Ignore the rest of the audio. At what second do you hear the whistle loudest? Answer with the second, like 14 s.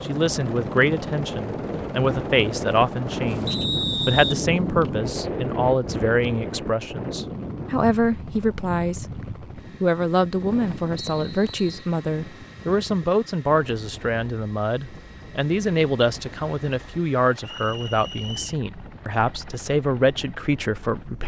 4 s.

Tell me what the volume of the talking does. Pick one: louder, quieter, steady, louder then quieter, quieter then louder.
steady.